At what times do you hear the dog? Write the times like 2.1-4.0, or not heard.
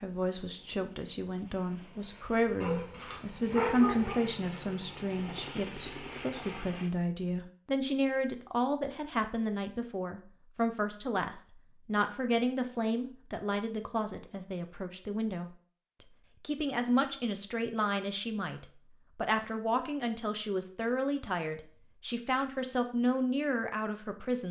2.6-4.2.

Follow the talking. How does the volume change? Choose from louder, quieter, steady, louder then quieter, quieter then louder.
steady.